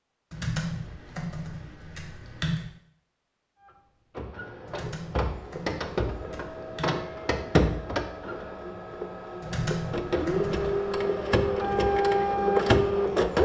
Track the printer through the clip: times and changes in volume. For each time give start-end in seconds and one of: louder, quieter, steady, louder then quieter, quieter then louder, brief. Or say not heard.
3.6-13.3 louder.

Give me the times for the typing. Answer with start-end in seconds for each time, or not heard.
0.3-2.7, 4.7-7.0, 9.4-11.0.